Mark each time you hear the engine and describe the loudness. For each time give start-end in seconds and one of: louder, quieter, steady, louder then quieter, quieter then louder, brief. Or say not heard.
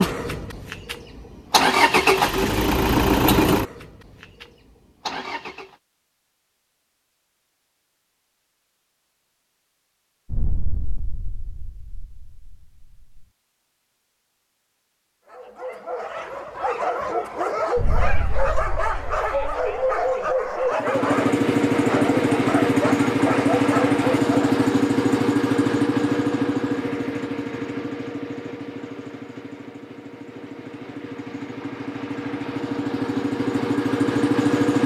0.0-5.8 louder then quieter
20.7-34.8 quieter then louder.